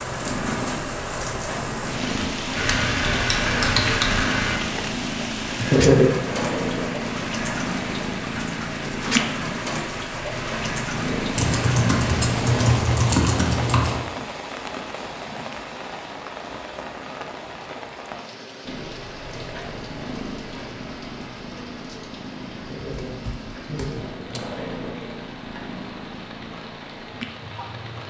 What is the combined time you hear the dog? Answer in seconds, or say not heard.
not heard.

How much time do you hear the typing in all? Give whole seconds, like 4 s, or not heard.
6 s.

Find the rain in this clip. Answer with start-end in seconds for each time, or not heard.
0.0-28.0.